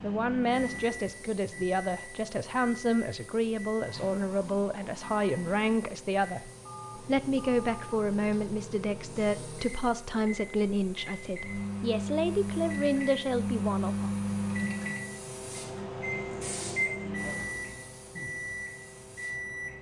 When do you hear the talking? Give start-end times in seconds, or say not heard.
0.0-14.1.